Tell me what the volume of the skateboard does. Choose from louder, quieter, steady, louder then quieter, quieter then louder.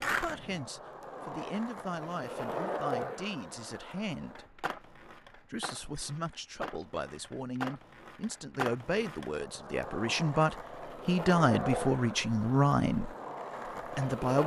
quieter then louder.